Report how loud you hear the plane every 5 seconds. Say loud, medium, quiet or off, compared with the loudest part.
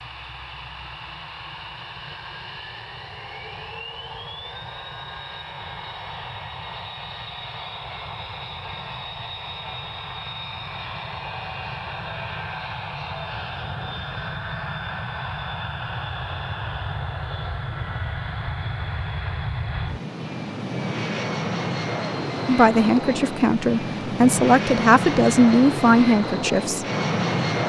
quiet, medium, medium, medium, loud, loud.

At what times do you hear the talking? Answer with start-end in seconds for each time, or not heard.
22.4-26.9.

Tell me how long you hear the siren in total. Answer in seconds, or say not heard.
not heard.